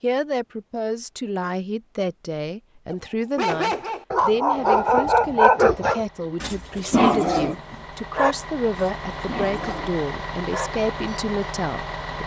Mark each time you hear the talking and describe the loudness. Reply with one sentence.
You can hear the talking from 0.0 to 12.2 s, at a steady volume.